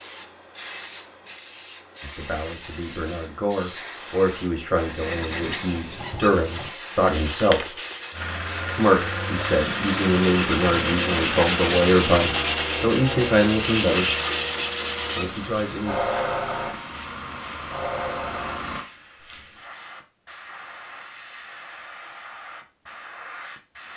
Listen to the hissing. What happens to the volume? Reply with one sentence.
The loudness of the hissing goes down.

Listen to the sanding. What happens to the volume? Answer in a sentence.
The volume of the sanding goes up.